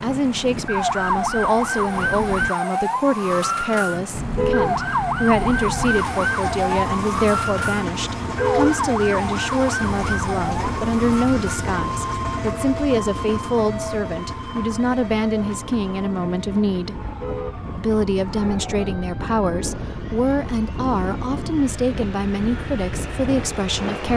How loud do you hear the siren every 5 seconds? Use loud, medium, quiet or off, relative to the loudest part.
loud, loud, medium, quiet, quiet.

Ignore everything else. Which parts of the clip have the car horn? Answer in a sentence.
You can hear the car horn from 4.3 to 4.8 s, from 8.3 to 8.8 s and from 17.1 to 17.6 s.